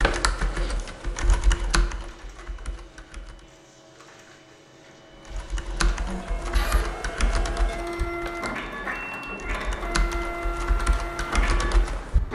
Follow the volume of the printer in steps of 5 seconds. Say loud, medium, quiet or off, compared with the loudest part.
quiet, loud, loud.